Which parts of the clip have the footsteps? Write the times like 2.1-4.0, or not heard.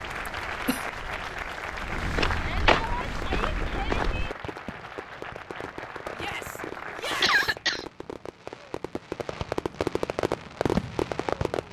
0.0-4.3.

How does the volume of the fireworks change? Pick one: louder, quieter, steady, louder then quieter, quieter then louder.
louder.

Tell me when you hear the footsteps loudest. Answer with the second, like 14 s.
3 s.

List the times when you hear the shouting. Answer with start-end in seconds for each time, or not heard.
2.4-4.3, 6.2-7.4.